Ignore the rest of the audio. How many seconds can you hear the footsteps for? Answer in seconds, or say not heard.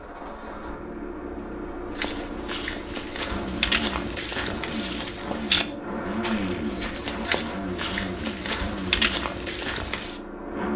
8 s.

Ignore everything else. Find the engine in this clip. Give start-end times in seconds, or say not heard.
0.0-10.7.